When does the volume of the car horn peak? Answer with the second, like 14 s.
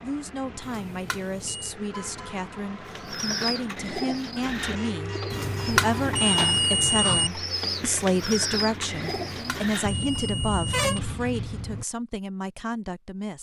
11 s.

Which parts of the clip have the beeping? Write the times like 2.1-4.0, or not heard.
0.6-1.8, 5.3-7.3, 9.2-11.0.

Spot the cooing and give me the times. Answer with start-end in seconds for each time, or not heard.
2.9-10.2.